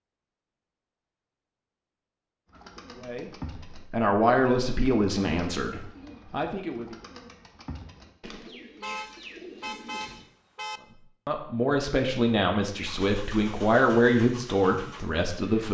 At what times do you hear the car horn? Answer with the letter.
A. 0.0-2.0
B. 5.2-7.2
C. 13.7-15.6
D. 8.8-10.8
D.